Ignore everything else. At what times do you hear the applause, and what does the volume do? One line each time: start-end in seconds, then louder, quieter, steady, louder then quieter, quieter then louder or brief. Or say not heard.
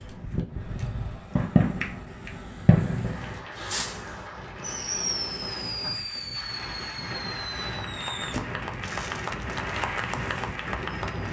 3.0-11.2 louder.